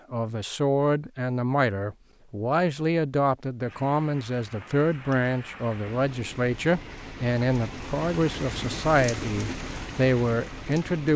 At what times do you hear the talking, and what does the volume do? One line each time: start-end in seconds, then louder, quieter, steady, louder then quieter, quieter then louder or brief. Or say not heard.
0.1-11.1 steady.